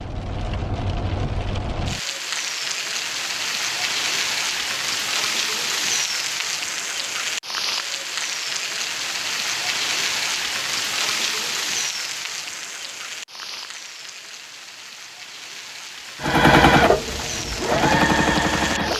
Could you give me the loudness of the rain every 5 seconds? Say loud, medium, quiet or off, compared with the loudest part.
loud, loud, loud, medium.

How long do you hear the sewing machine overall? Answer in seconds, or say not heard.
3 s.